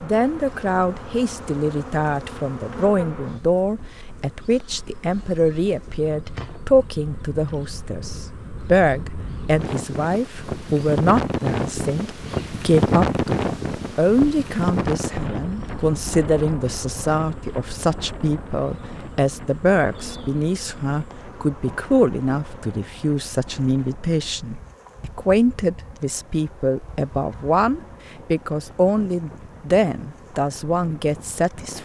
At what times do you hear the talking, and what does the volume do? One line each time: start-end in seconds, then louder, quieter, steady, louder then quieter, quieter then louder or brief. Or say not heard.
0.0-31.8 steady.